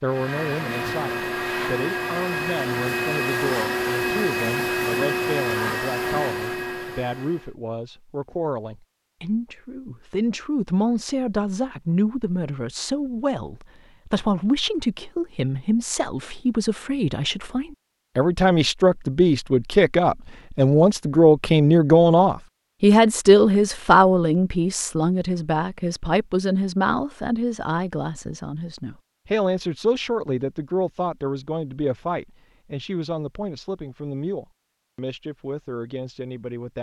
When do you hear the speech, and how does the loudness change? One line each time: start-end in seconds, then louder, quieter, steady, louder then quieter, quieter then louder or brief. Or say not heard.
0.0-36.7 louder then quieter.